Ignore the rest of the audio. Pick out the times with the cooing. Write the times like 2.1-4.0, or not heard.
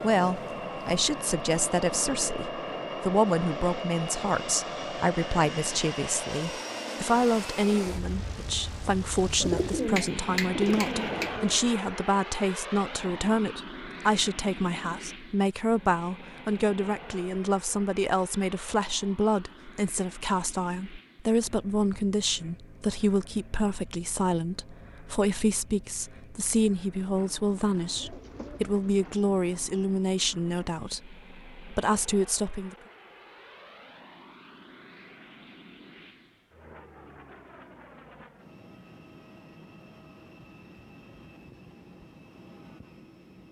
9.4-11.6, 27.7-29.6.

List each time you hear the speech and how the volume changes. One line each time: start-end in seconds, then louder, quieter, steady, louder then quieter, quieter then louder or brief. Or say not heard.
0.0-32.8 steady.